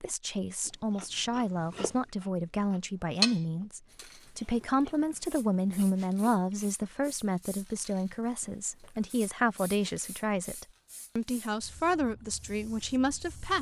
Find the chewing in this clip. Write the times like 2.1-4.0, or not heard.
0.6-7.2.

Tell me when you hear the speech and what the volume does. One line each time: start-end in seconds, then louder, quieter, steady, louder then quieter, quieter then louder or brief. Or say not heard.
0.0-13.5 steady.